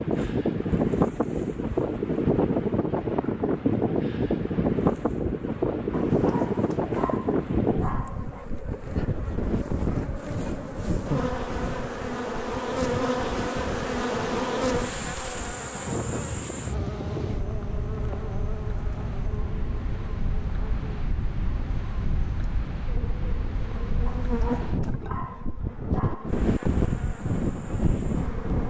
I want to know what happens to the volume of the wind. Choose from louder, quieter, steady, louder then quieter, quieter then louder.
quieter then louder.